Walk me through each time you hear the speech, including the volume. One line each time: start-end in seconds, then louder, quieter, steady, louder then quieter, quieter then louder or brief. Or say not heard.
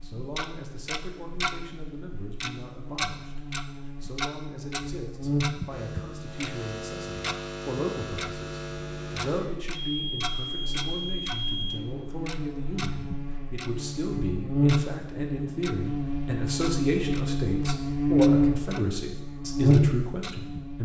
0.0-20.8 louder.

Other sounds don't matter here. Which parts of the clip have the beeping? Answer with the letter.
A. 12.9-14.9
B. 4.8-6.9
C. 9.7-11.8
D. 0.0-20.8
C.